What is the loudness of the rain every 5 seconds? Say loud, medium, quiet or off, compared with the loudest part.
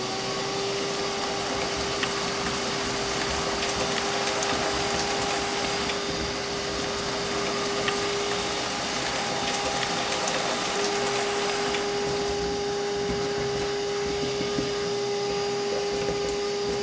loud, loud, loud, off.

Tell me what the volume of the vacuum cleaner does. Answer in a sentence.
The loudness of the vacuum cleaner stays about the same.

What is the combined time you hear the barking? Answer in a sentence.
The barking can't be heard in this clip.